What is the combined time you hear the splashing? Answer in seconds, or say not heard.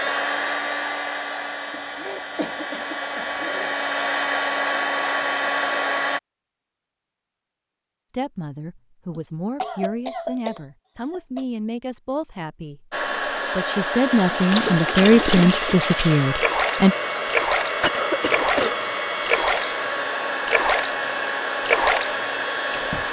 9 s.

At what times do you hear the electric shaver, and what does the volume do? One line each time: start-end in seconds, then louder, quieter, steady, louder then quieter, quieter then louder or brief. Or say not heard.
not heard.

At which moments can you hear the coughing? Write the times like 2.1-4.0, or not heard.
1.7-3.8, 9.2-11.4, 17.8-18.9.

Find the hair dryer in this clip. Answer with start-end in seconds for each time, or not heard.
0.0-6.2, 12.9-23.0.